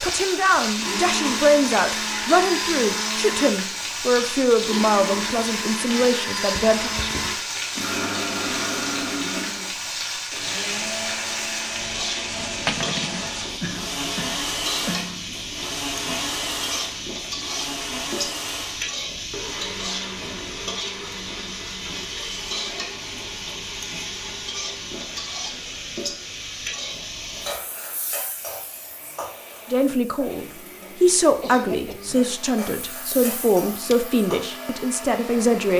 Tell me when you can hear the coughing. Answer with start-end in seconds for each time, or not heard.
6.5-7.4, 13.6-15.3, 31.4-32.2.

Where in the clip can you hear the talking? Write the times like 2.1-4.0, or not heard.
0.0-6.9, 29.7-35.7.